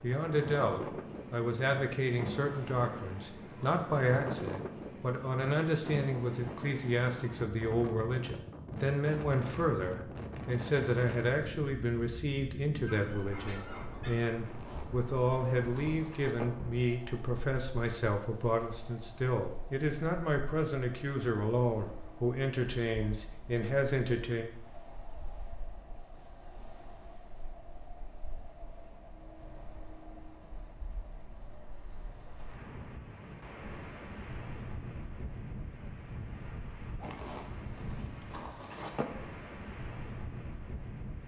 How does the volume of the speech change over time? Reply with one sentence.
The volume of the speech stays about the same.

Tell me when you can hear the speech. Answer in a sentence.
The speech can be heard from 0.0 to 24.4 s.